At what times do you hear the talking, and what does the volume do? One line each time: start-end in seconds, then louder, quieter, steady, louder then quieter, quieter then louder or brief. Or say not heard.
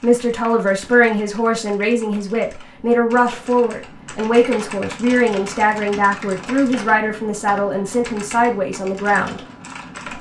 0.0-9.4 steady.